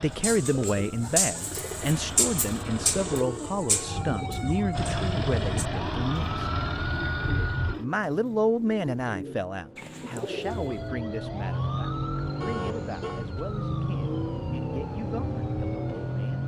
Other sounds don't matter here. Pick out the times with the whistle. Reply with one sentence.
You can't hear the whistle here.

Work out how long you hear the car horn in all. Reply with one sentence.
The car horn can be heard for 2 seconds in total.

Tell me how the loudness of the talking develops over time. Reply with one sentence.
The loudness of the talking goes down.